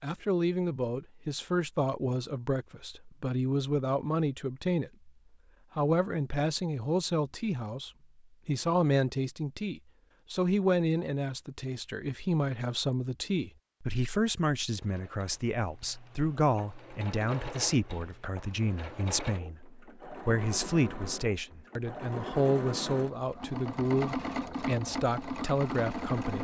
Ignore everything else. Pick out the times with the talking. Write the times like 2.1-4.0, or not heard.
0.0-5.1, 5.8-26.3.